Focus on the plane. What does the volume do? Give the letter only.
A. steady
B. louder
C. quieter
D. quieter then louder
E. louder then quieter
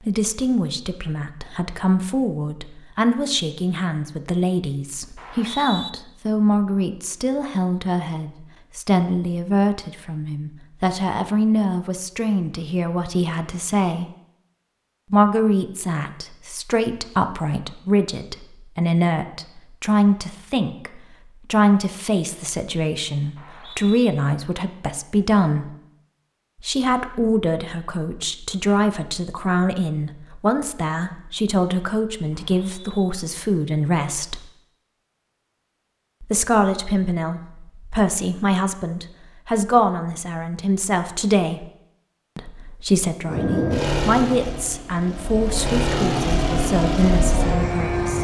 D.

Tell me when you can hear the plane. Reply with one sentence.
You can hear the plane from 43.2 to 48.1 s.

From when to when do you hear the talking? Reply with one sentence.
The talking can be heard from 0.1 to 14.1 s, from 15.1 to 25.7 s, from 26.6 to 34.5 s, from 36.2 to 41.6 s and from 42.4 to 48.1 s.